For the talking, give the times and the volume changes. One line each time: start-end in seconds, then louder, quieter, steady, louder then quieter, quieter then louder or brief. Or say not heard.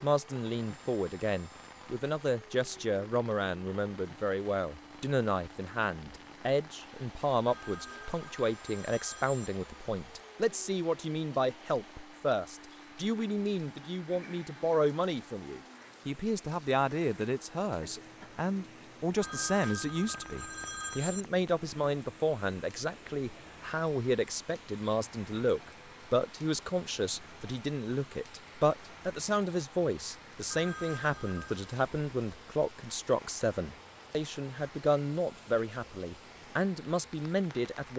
0.0-37.9 steady.